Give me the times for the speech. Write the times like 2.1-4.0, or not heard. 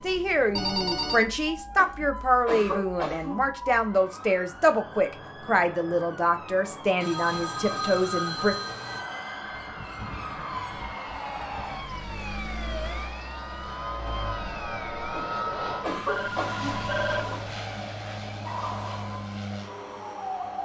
0.0-8.6.